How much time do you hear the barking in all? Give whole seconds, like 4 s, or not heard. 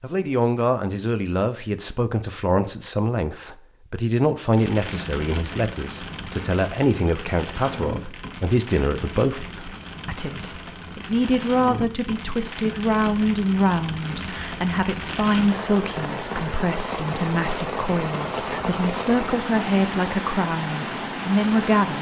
not heard.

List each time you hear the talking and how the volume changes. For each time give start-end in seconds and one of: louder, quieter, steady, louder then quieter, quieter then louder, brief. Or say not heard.
0.0-21.9 steady.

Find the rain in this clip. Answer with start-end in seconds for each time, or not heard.
4.5-21.9.